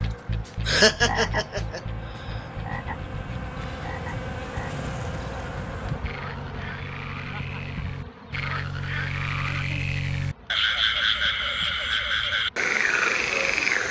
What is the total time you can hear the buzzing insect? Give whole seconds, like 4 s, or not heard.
14 s.